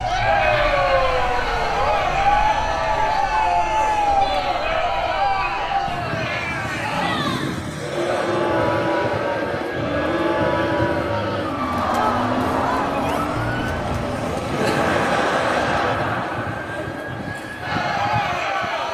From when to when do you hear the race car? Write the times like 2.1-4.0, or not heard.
6.9-15.9.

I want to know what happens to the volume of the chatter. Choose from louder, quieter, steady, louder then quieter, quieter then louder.
steady.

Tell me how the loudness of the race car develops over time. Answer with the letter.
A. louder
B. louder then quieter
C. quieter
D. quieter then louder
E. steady
E.